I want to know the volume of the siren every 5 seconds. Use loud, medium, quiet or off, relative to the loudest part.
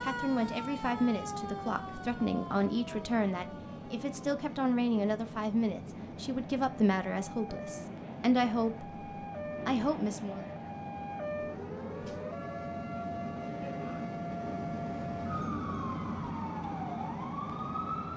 loud, medium, loud, loud.